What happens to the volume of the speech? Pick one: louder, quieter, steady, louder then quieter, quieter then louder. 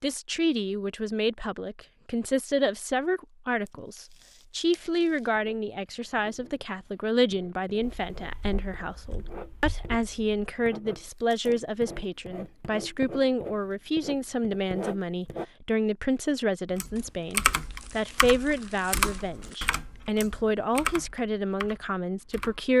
steady.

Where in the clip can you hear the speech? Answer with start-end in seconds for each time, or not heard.
0.0-22.7.